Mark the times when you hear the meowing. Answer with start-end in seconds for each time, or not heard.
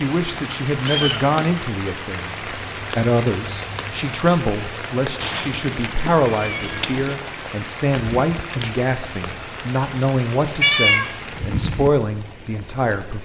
0.8-1.5, 5.2-7.2, 10.6-11.2.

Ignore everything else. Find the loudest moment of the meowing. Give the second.
11 s.